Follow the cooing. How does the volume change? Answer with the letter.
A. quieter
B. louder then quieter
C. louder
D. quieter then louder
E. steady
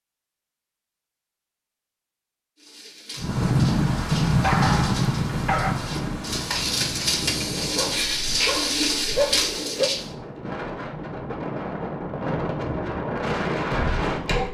C.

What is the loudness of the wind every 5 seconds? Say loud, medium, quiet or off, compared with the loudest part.
loud, medium, medium.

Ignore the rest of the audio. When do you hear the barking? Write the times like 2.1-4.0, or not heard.
4.4-5.8, 7.8-9.9.